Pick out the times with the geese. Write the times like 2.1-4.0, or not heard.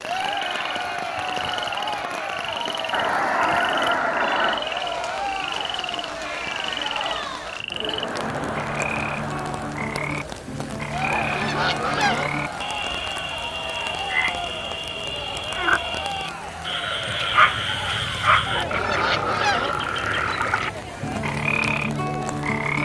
2.9-4.7, 11.0-12.3, 18.4-19.8.